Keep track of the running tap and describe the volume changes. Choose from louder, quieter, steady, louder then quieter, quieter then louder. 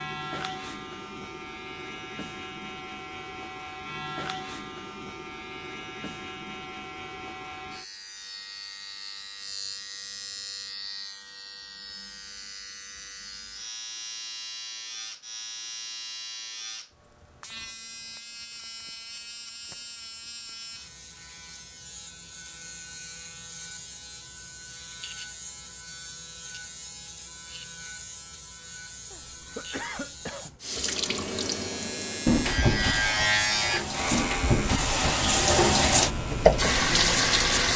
louder.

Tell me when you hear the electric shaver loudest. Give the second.
33 s.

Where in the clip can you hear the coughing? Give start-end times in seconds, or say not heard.
29.1-30.6.